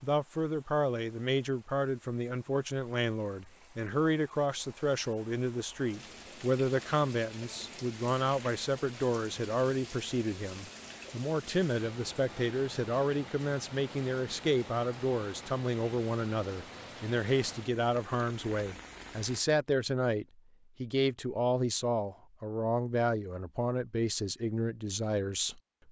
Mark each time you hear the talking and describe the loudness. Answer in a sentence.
The talking can be heard from 0.0 to 25.6 s, at a steady volume.